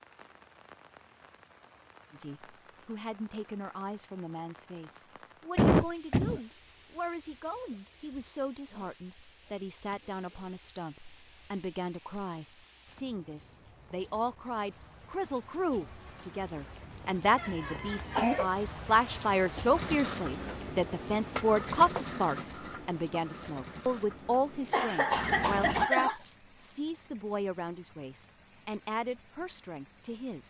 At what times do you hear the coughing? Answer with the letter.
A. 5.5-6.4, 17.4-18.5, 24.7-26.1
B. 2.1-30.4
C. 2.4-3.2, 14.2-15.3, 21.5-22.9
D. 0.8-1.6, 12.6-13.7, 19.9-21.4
A.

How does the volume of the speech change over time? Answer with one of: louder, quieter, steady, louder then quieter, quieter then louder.
louder then quieter.